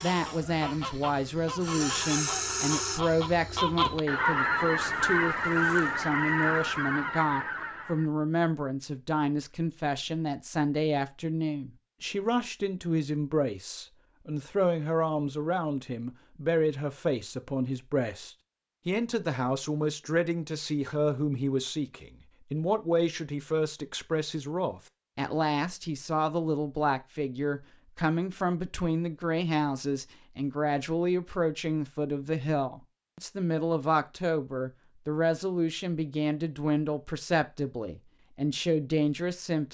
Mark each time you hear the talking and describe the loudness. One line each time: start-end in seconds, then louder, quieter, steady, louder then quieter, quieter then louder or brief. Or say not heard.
0.0-39.6 steady.